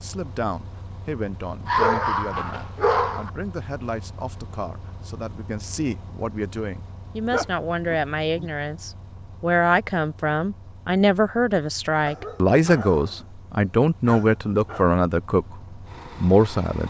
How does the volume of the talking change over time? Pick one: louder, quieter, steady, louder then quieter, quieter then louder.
louder.